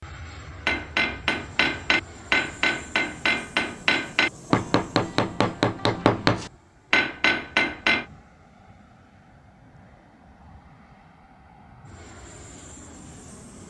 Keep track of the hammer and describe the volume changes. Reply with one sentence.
The loudness of the hammer stays about the same.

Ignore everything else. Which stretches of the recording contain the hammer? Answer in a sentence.
You can hear the hammer from 0.7 to 8.1 s.